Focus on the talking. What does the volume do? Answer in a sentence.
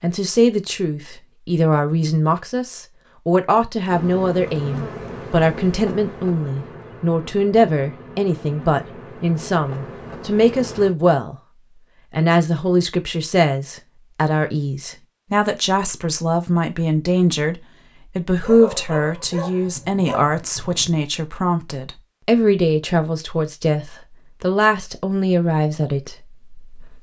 The volume of the talking stays about the same.